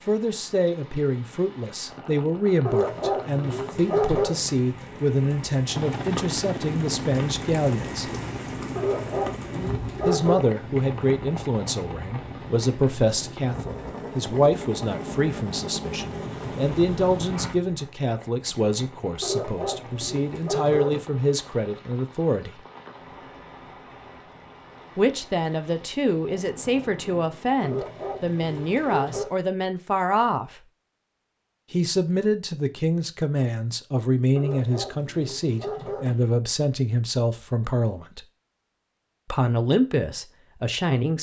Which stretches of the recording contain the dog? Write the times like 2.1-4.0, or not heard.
2.6-4.4, 8.8-10.4, 19.2-21.1, 27.6-29.3, 34.4-36.2.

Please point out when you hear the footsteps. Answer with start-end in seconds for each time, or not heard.
not heard.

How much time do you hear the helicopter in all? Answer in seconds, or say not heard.
12 s.